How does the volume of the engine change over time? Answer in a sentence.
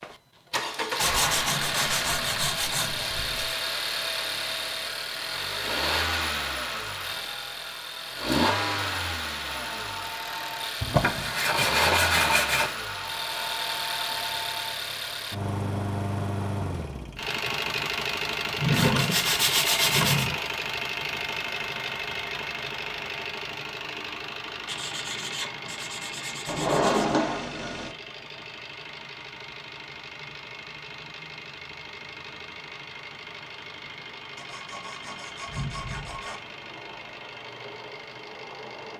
The loudness of the engine goes down.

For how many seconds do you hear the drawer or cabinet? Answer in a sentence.
You can hear the drawer or cabinet for 4 seconds altogether.